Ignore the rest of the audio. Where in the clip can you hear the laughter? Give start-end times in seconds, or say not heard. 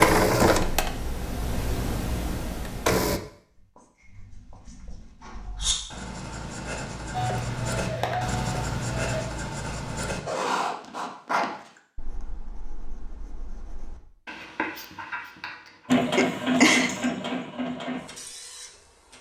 15.9-16.9.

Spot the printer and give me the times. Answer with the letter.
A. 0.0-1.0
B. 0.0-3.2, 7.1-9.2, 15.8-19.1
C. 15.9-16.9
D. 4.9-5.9
B.